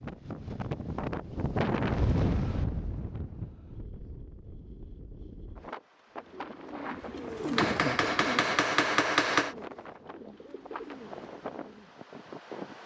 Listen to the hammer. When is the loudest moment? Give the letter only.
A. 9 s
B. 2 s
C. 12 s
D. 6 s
A.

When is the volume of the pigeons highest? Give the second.
8 s.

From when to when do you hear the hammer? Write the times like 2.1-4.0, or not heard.
7.5-9.6.